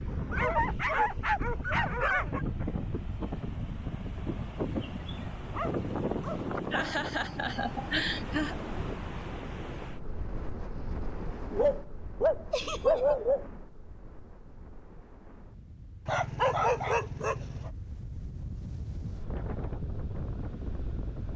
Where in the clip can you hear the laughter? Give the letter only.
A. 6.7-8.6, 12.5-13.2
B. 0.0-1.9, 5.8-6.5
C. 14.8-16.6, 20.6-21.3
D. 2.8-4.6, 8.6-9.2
A.